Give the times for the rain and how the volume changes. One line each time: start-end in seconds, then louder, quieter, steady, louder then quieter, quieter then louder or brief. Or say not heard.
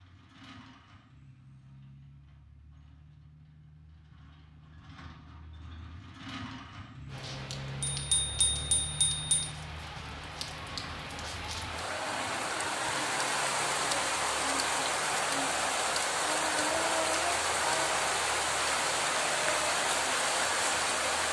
7.0-21.2 louder.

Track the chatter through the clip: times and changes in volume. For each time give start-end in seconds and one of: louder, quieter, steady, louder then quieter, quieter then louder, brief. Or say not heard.
not heard.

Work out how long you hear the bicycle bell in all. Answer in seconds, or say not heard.
2 s.